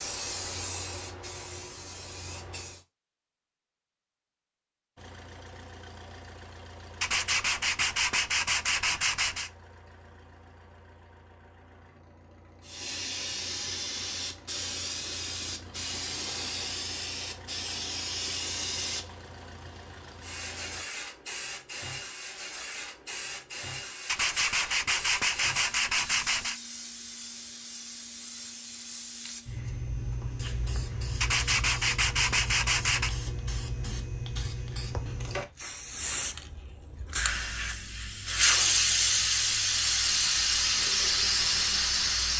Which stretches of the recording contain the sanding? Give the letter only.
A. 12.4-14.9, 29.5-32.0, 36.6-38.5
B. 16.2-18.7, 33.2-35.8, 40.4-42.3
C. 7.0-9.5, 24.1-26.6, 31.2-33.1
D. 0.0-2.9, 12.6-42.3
C.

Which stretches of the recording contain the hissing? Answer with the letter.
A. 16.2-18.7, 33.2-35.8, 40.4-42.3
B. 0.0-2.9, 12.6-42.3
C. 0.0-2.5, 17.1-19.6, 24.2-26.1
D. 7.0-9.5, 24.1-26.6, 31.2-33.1
B.